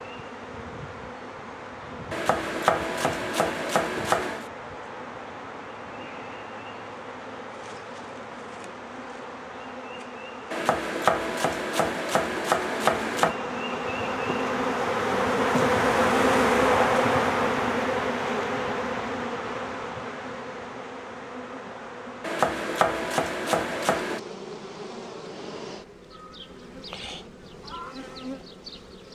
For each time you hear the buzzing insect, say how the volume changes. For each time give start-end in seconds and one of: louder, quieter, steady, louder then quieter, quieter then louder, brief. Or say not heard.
0.0-29.1 louder then quieter.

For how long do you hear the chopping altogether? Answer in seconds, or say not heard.
7 s.